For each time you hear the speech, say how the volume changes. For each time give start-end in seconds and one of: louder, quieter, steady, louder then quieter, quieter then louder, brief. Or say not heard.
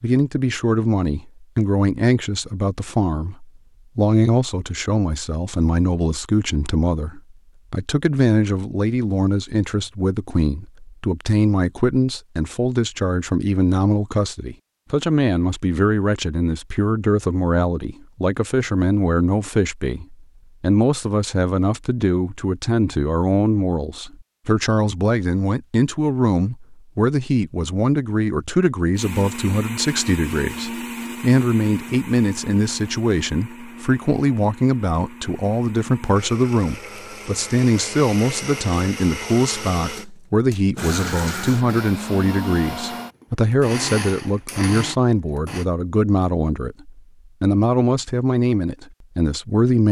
0.0-49.8 steady.